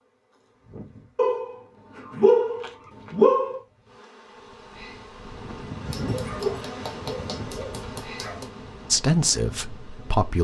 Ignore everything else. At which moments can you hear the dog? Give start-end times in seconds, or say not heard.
1.1-3.6, 5.8-8.4.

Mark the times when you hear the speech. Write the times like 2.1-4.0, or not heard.
8.9-10.3.